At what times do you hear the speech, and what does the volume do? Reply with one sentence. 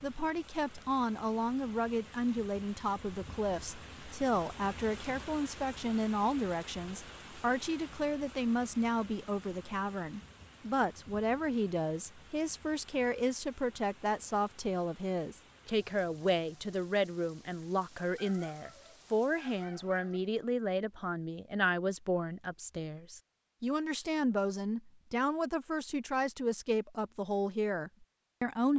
You can hear the speech from 0.0 to 28.7 s, at a steady volume.